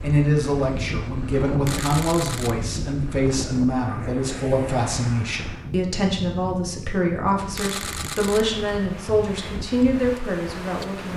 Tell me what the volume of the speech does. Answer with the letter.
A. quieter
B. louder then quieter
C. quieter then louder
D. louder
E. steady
E.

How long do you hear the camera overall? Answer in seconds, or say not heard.
2 s.